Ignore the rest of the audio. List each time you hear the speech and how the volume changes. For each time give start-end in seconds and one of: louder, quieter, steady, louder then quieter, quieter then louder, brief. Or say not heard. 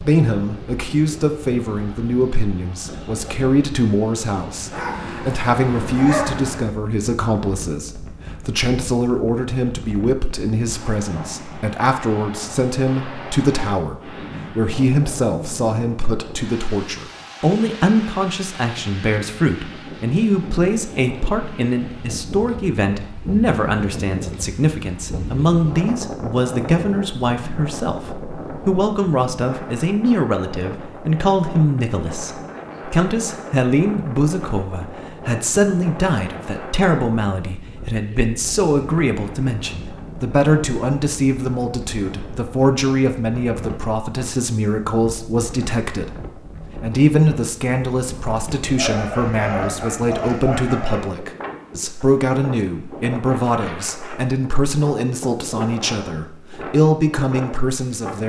0.0-46.2 steady
46.8-58.2 steady.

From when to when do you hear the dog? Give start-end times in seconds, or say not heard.
4.7-6.6, 48.8-51.0.